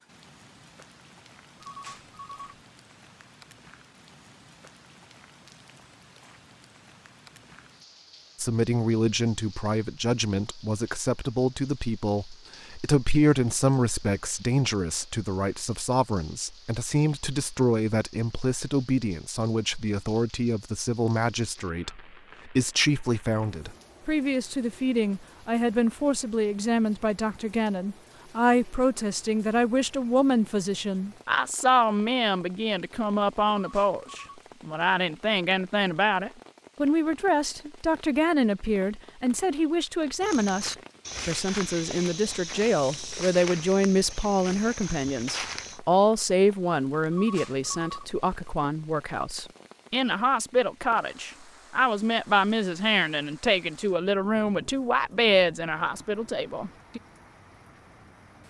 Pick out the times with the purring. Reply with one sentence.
The purring can't be heard in this clip.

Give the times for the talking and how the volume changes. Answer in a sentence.
You can hear the talking from 8.3 to 57.0 s, at a steady volume.